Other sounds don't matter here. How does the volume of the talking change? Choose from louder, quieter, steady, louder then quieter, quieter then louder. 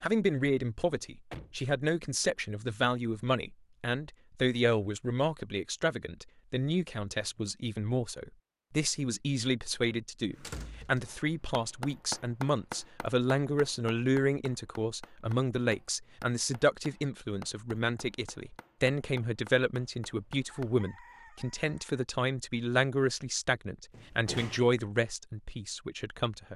steady.